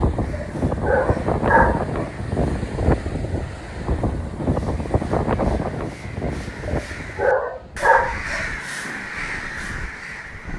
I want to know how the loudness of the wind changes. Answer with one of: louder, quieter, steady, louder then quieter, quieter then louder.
quieter.